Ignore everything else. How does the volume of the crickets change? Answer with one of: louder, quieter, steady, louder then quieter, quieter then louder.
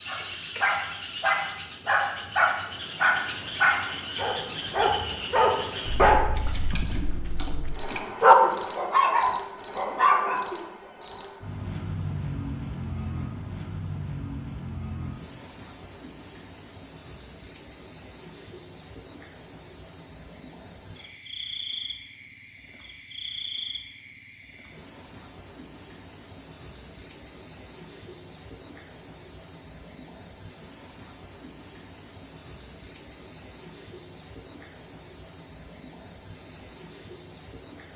quieter.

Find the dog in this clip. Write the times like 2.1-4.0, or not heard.
0.1-10.6.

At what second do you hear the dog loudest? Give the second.
8 s.